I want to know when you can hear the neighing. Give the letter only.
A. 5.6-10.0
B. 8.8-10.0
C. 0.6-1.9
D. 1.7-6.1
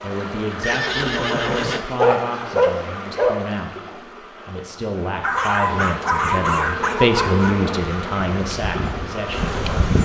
C.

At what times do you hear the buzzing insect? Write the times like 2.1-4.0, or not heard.
5.6-10.0.